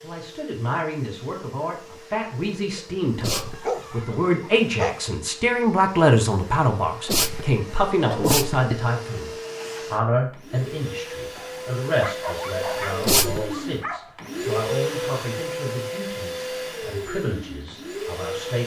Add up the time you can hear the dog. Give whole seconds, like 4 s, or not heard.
5 s.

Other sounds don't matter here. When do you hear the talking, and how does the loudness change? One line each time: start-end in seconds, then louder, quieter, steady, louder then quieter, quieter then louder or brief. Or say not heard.
0.0-18.6 louder then quieter.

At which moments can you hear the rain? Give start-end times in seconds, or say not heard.
not heard.